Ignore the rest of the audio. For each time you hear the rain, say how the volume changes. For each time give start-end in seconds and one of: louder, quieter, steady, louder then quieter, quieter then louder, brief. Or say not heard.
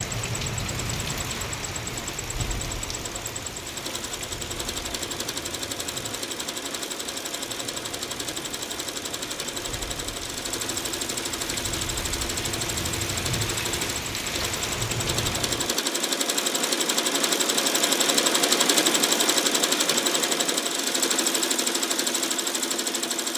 0.0-15.8 quieter then louder.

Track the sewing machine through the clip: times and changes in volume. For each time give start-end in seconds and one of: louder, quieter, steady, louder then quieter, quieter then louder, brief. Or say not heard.
0.0-23.3 louder.